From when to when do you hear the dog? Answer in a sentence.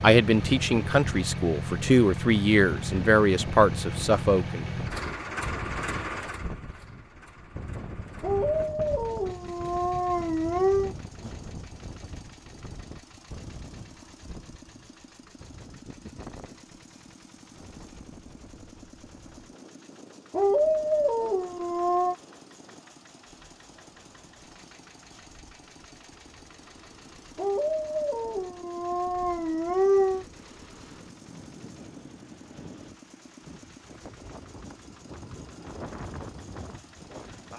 The dog can be heard from 8.2 to 10.9 s, from 20.3 to 22.1 s and from 27.4 to 30.2 s.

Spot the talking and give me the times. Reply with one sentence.
The talking can be heard from 0.0 to 4.7 s.